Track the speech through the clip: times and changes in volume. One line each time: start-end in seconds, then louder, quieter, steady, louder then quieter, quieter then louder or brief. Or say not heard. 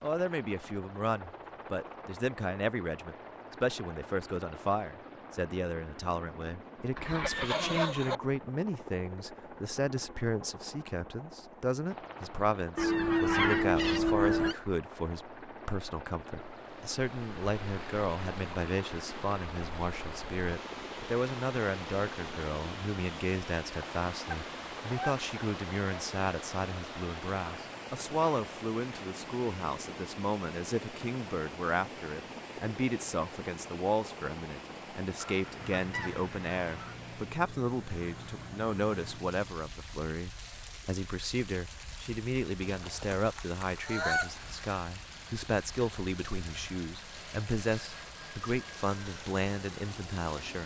0.0-50.6 steady.